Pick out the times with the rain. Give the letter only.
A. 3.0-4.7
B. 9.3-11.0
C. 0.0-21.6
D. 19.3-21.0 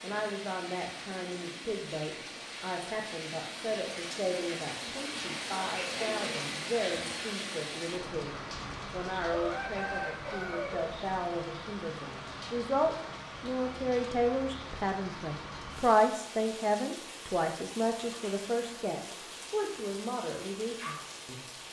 C.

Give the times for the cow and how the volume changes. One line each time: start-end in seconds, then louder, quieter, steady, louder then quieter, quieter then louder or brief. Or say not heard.
not heard.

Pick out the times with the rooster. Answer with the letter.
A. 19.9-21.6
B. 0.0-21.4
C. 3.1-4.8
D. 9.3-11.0
D.